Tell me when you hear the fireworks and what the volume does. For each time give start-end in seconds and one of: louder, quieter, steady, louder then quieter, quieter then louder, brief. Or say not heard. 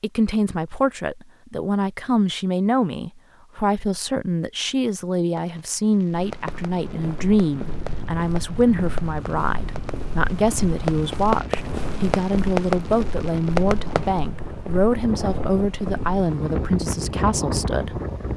5.3-14.2 louder.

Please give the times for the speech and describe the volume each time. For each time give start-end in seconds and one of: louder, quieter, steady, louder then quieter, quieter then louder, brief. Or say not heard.
0.0-18.0 steady.